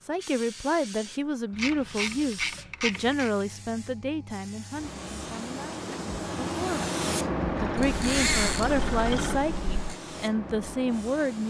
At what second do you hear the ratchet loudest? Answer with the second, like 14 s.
8 s.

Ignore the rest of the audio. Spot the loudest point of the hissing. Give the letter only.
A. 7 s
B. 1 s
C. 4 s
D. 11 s
A.